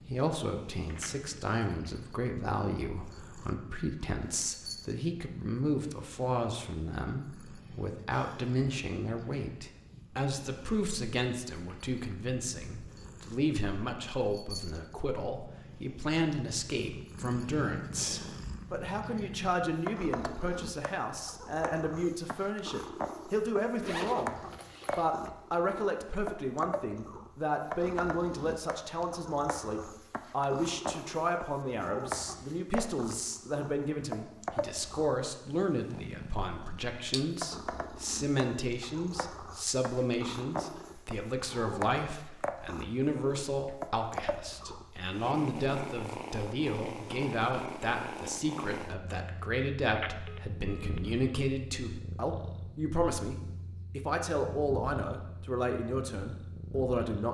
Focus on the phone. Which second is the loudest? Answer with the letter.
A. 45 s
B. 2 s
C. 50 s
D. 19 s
C.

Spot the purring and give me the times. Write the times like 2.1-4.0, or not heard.
0.0-57.2.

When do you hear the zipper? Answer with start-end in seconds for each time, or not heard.
23.8-25.1.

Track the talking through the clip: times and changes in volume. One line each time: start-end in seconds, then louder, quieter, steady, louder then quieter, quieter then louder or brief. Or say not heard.
0.1-24.4 steady
24.9-57.2 steady.